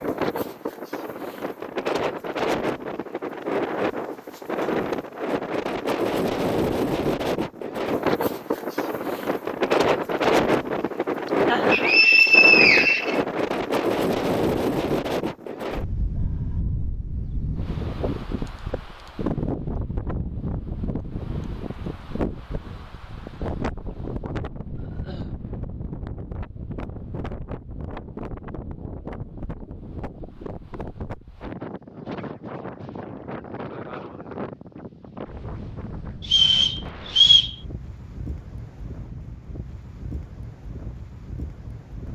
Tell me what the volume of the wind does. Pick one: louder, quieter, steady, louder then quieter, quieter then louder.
quieter.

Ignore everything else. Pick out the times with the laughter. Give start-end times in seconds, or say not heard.
11.3-11.9.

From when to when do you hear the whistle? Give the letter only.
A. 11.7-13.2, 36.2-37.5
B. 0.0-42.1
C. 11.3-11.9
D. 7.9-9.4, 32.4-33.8
A.